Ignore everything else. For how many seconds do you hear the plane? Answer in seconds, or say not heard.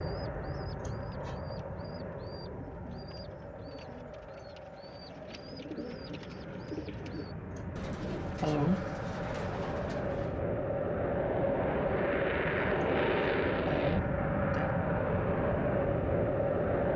17 s.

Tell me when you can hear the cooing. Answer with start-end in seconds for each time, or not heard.
0.0-10.4.